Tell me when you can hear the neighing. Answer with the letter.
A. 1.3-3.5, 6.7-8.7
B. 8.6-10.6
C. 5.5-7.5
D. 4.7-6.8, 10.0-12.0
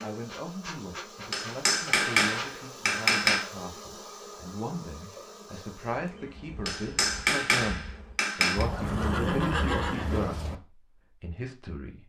B.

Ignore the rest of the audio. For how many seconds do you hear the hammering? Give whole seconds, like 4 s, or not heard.
4 s.